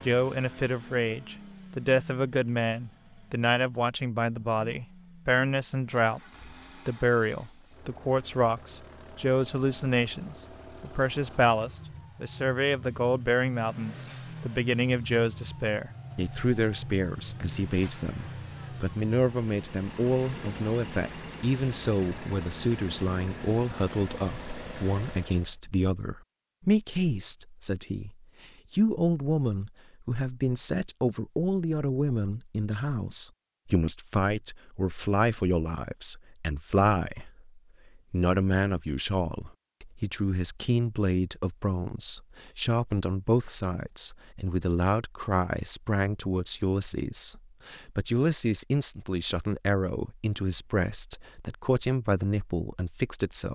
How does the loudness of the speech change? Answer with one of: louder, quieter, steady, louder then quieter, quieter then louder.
steady.